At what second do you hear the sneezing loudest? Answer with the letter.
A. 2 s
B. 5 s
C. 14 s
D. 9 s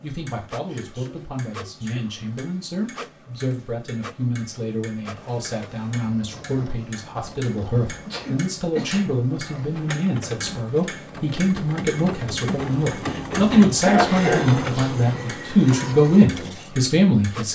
C.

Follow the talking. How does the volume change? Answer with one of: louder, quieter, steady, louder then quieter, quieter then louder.
louder.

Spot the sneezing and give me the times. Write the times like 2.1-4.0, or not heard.
0.7-2.0, 8.1-9.1, 13.8-14.9.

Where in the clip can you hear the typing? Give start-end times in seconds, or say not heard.
not heard.